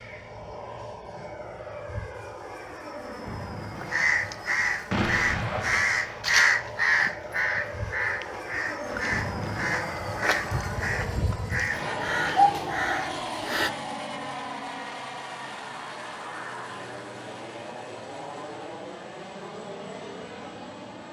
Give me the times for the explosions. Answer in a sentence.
The explosions can be heard from 4.9 to 6.2 s.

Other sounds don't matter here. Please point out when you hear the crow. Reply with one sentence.
You can hear the crow from 3.8 to 13.7 s.